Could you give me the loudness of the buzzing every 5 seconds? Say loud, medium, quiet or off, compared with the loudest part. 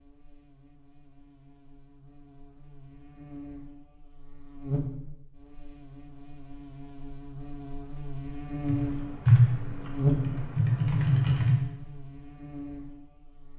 medium, medium, loud.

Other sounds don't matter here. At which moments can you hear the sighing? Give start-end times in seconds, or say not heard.
not heard.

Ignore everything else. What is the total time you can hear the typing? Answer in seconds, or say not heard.
3 s.